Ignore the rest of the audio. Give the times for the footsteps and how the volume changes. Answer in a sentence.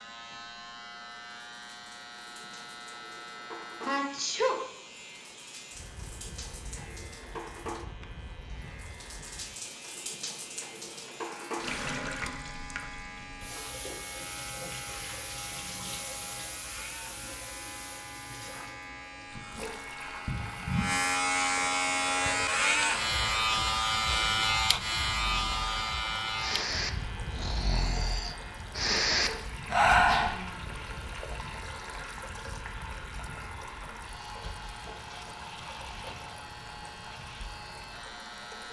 You can't hear the footsteps here.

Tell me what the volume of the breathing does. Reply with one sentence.
The loudness of the breathing goes up.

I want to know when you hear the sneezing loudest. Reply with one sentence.
The volume of the sneezing peaks at 4 seconds.